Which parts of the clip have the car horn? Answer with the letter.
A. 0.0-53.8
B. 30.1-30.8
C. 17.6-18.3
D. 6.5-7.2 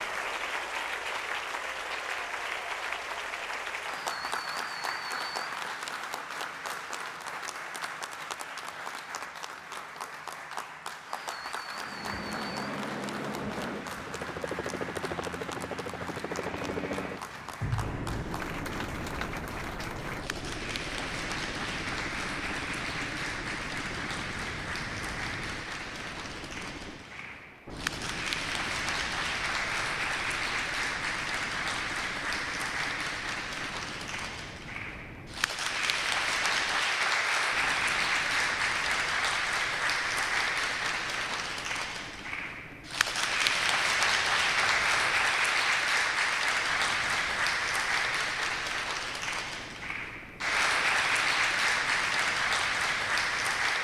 C.